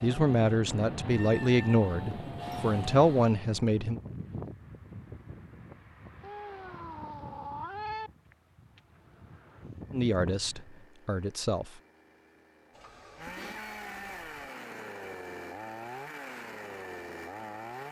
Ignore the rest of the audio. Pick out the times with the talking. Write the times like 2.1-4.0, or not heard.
0.0-4.0, 9.9-11.7.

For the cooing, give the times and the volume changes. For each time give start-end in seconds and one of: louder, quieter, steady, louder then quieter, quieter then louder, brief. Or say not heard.
not heard.